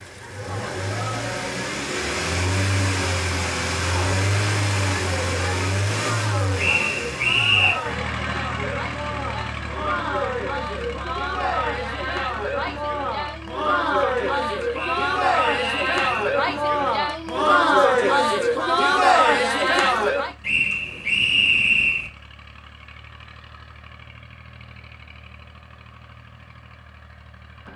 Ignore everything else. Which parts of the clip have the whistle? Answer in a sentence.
The whistle can be heard from 6.5 to 7.8 s, from 14.7 to 16.1 s and from 20.4 to 22.1 s.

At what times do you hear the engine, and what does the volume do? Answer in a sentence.
The engine can be heard from 0.0 to 27.7 s, getting quieter.